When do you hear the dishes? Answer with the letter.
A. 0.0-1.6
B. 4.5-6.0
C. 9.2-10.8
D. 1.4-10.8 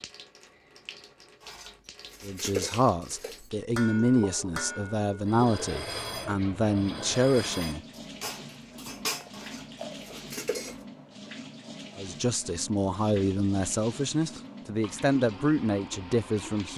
D.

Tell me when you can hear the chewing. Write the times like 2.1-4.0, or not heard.
9.2-10.8.